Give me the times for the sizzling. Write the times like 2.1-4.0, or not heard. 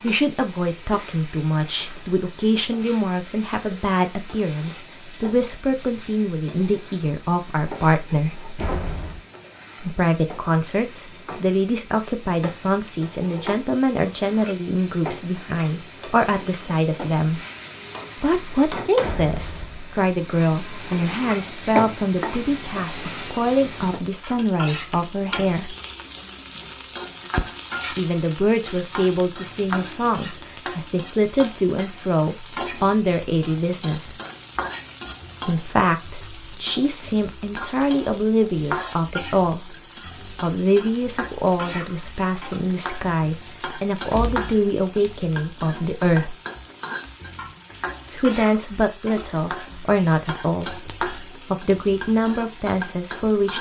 0.0-53.5.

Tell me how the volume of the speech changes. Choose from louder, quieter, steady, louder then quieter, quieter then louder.
steady.